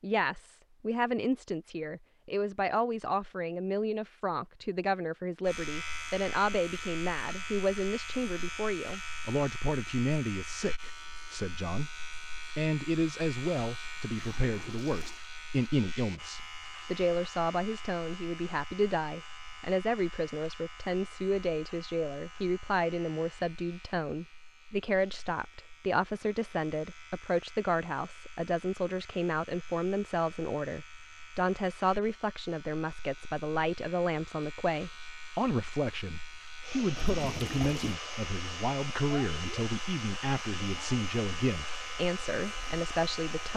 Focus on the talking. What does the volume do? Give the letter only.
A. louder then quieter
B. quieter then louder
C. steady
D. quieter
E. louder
C.